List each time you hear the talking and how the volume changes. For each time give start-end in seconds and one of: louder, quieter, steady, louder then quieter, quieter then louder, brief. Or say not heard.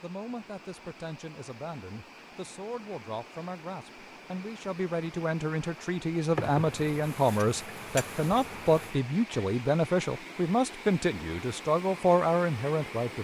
0.0-13.1 louder.